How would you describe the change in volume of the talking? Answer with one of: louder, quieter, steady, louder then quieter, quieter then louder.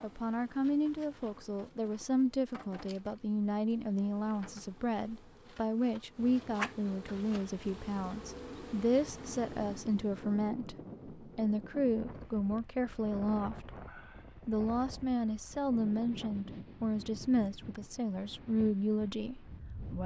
steady.